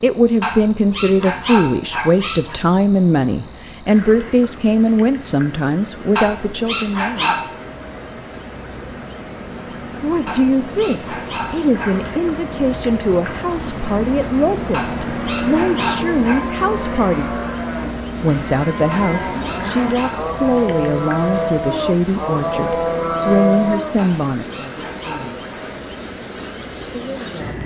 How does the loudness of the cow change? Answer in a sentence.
The loudness of the cow goes up.